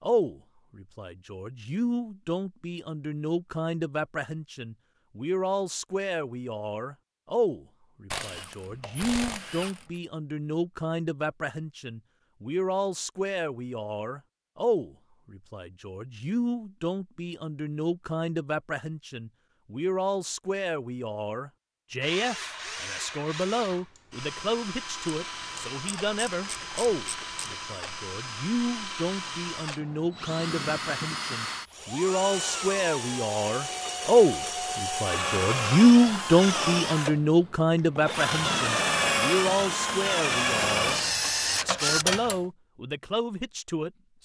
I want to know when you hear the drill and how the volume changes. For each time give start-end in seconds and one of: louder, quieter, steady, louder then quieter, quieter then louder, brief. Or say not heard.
22.0-42.0 louder.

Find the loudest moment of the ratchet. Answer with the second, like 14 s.
42 s.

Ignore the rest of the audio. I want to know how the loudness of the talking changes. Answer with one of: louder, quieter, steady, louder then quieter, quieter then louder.
louder.